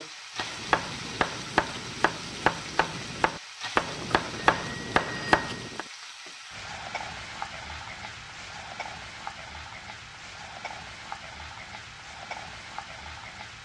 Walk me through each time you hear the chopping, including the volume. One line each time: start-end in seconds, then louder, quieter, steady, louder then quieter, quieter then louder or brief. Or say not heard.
0.3-5.8 quieter then louder.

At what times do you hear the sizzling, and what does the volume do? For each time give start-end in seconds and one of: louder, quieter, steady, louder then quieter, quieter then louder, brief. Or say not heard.
0.0-13.6 steady.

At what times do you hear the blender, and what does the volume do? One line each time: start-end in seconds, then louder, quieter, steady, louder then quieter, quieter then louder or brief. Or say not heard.
not heard.